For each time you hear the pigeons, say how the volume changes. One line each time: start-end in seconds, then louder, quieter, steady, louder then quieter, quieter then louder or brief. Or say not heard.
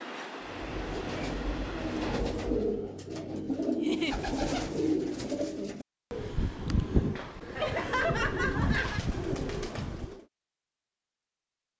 0.5-10.2 steady.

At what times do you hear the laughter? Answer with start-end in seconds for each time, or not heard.
3.8-4.2, 7.5-9.0.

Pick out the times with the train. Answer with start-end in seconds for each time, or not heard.
0.0-2.2.